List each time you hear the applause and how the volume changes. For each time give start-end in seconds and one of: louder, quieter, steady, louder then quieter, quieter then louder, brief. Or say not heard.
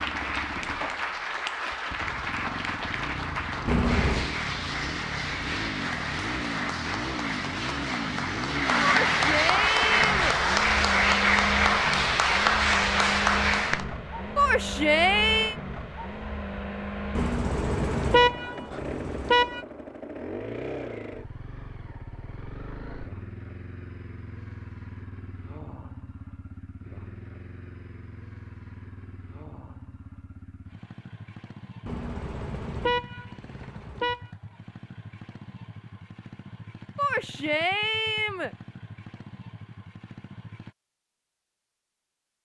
0.0-13.9 louder.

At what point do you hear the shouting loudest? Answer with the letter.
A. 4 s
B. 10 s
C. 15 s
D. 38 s
C.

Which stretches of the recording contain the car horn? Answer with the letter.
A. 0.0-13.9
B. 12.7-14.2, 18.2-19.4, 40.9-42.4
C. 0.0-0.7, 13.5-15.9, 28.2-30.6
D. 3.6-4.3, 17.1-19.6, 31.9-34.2
D.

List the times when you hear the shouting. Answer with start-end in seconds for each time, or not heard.
8.8-10.3, 14.3-15.6, 37.0-38.5.